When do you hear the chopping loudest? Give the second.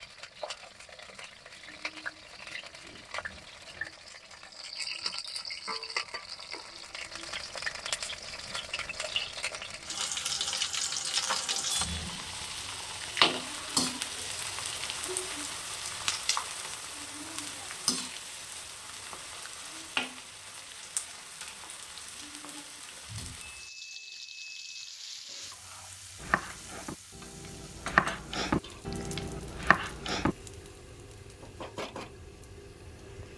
28 s.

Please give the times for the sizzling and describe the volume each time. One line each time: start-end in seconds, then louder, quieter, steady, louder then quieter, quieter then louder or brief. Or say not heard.
0.0-33.3 louder then quieter.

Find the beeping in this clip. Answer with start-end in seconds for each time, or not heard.
22.9-24.9.